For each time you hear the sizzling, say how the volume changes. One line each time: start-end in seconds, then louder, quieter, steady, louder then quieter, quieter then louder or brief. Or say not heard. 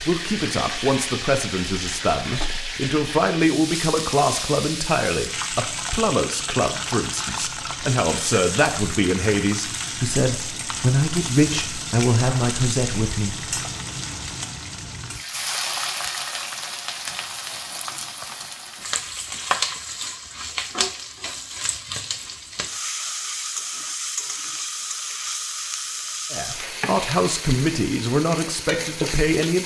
0.0-29.6 steady.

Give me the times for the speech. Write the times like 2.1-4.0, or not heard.
0.0-13.5, 26.3-29.6.